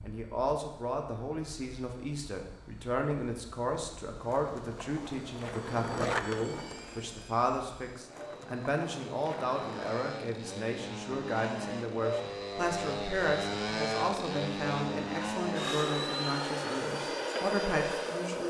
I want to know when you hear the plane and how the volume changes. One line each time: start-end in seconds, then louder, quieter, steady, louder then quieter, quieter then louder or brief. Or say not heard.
0.0-18.4 louder.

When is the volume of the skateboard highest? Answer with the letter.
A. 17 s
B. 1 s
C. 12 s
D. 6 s
D.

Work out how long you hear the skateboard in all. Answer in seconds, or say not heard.
6 s.